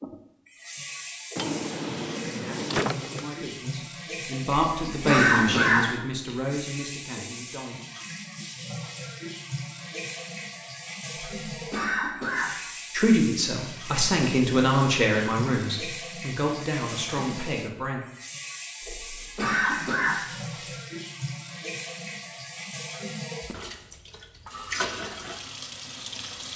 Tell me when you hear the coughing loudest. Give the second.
5 s.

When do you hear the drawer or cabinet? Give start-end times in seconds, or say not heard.
1.4-3.2.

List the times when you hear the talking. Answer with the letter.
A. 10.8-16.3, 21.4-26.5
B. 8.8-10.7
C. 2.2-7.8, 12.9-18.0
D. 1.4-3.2
C.